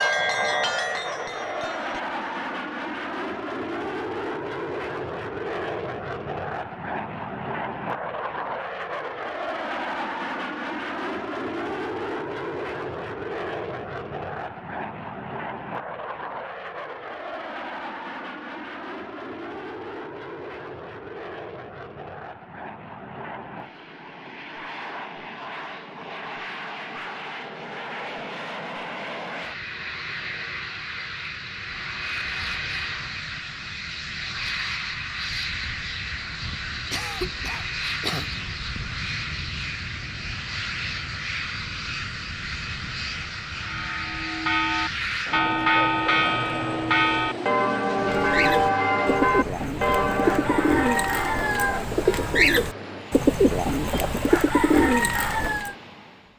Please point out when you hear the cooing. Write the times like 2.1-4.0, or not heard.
48.1-55.8.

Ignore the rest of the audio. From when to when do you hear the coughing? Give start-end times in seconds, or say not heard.
36.9-38.3.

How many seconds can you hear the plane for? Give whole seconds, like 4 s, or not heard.
56 s.